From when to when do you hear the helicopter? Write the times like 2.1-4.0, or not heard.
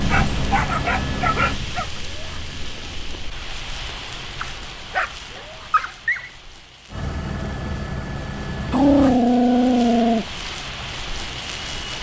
0.0-3.0, 6.9-11.9.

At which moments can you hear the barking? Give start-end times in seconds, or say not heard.
0.0-1.9, 4.4-6.3, 8.7-10.2.